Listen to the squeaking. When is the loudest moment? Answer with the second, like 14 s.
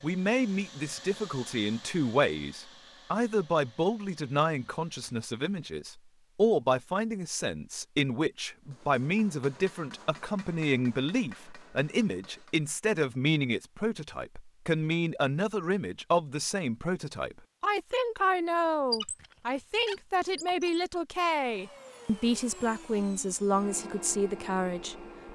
19 s.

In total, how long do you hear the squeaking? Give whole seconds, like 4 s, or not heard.
2 s.